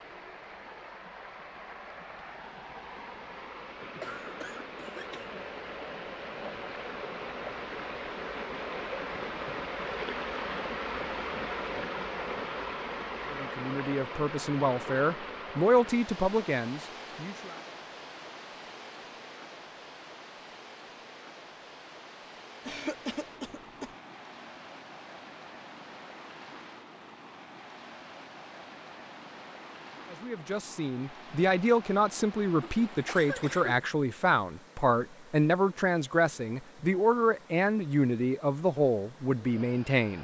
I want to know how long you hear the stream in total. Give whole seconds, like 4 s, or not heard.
40 s.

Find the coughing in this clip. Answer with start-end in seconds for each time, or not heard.
4.0-5.4, 22.6-23.9, 32.6-33.8.